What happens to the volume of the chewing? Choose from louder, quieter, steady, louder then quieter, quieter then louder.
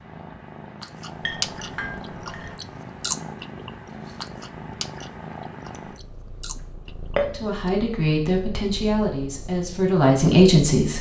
quieter then louder.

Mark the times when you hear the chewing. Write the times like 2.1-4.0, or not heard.
0.8-7.7.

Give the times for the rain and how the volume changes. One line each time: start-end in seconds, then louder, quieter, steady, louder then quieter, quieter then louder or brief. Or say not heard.
not heard.